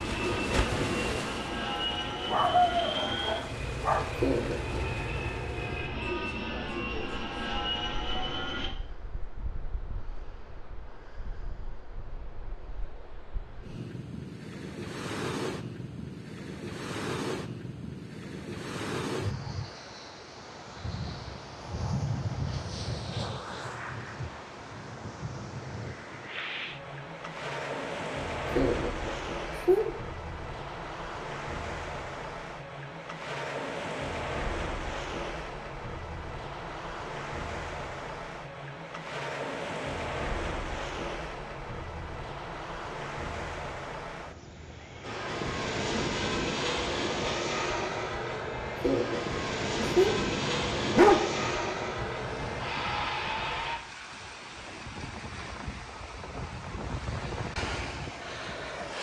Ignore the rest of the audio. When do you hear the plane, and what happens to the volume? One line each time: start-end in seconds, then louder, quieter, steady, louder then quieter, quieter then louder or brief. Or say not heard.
0.0-8.7 steady
45.0-53.8 steady.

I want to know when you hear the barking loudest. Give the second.
51 s.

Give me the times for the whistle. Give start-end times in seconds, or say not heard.
not heard.